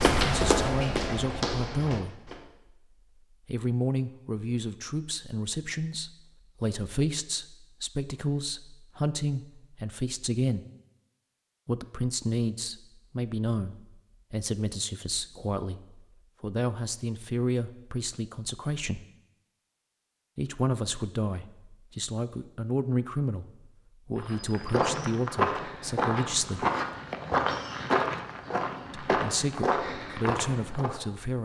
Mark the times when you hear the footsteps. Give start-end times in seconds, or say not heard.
0.0-2.4, 24.1-31.0.